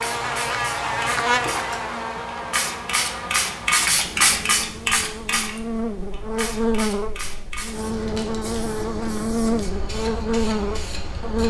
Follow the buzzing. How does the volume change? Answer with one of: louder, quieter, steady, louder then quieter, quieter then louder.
quieter then louder.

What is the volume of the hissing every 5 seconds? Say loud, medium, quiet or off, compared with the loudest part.
loud, medium, medium.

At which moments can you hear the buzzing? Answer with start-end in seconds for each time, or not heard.
0.0-11.4.